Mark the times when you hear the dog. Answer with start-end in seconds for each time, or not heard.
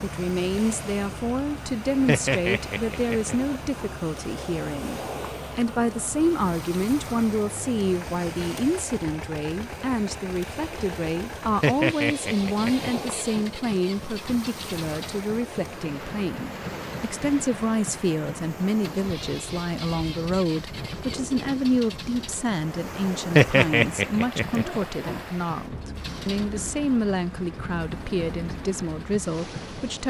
2.0-3.9, 11.6-13.4, 23.4-25.2.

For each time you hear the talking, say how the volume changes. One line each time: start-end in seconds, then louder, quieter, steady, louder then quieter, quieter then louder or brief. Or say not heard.
0.0-30.0 steady.